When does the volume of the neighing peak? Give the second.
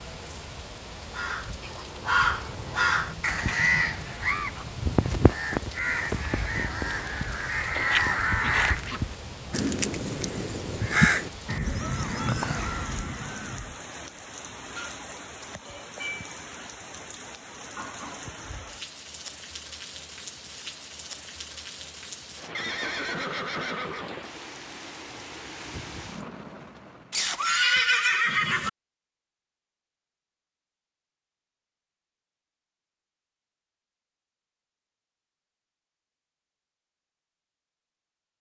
28 s.